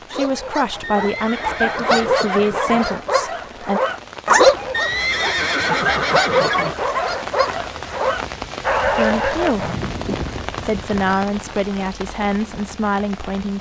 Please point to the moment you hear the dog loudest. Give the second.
4 s.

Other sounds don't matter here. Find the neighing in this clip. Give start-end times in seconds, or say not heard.
0.8-2.9, 4.7-6.8, 9.6-11.1.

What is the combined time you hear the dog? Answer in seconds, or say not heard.
10 s.